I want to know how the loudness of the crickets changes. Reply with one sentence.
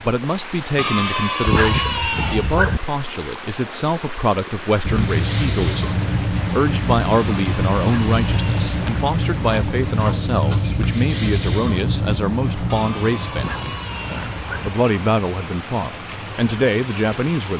The loudness of the crickets goes down.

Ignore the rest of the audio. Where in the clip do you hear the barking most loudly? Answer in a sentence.
The loudest moment of the barking is at 2 seconds.